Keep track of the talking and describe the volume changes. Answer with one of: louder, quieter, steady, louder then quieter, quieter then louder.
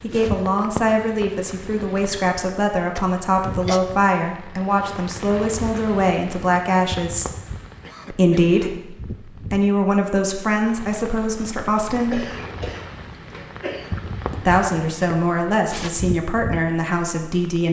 steady.